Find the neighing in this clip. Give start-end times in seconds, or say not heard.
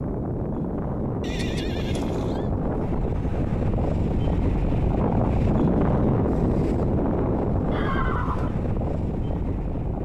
1.2-2.5, 7.7-8.6.